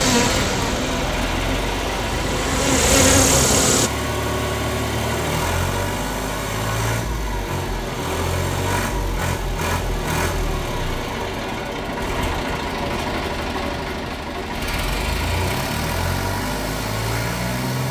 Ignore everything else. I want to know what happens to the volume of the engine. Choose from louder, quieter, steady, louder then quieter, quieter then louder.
steady.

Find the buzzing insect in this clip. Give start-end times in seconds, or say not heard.
0.0-3.9.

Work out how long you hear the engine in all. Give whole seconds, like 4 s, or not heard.
18 s.